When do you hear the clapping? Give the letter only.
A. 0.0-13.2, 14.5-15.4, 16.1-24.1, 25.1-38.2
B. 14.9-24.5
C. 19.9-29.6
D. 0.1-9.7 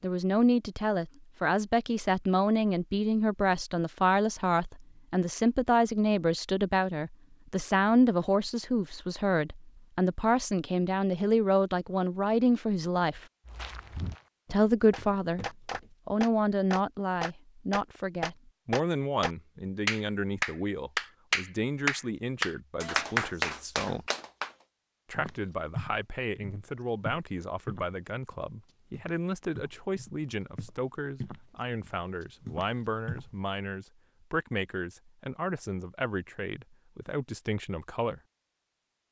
B.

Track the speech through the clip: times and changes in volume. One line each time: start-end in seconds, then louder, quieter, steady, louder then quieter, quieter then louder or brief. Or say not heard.
0.0-13.2 steady
14.5-15.4 brief
16.1-24.1 quieter
25.1-38.2 steady.